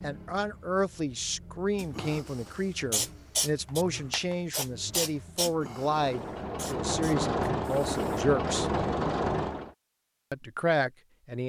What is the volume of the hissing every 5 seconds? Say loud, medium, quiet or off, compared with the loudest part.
loud, medium, off.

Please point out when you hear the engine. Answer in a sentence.
The engine can be heard from 0.0 to 9.7 s.